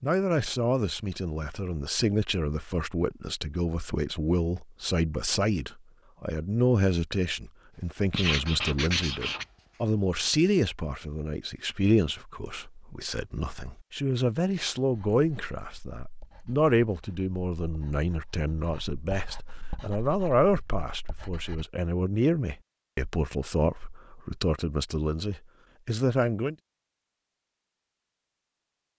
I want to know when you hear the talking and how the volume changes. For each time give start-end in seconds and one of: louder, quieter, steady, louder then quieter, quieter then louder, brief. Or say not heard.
0.0-26.6 steady.